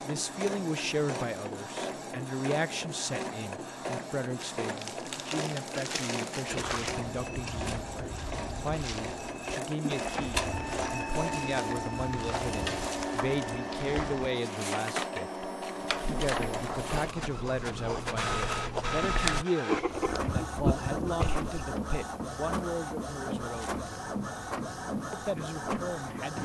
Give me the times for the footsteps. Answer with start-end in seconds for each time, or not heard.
6.5-14.3.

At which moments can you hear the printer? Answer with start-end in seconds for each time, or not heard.
0.0-26.4.